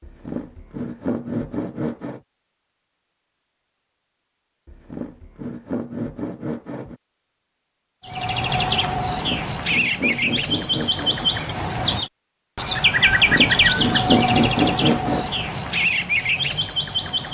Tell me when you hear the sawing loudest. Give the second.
14 s.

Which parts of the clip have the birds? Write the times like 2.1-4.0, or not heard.
8.1-17.2.